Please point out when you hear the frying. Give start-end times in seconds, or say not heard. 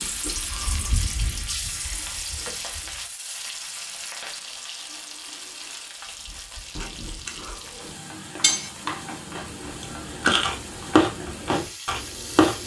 0.0-12.6.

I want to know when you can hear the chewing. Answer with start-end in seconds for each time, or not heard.
0.0-3.0, 6.2-12.6.